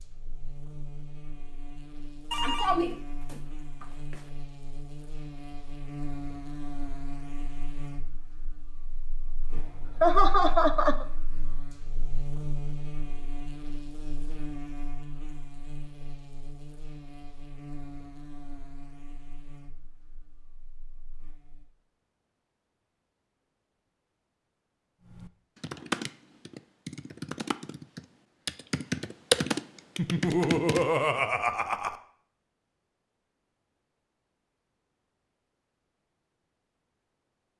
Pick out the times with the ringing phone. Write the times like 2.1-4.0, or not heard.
2.3-4.2.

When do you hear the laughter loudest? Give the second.
10 s.